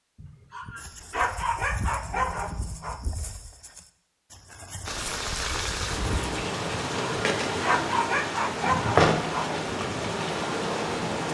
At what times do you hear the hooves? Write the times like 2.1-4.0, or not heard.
0.8-6.3.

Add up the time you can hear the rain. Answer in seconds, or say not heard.
6 s.